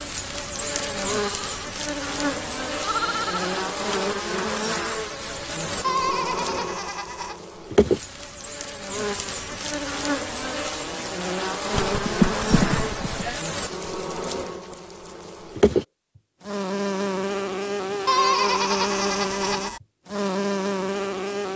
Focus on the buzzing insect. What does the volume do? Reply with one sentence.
The loudness of the buzzing insect stays about the same.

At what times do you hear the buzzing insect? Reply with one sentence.
You can hear the buzzing insect from 0.0 to 21.5 s.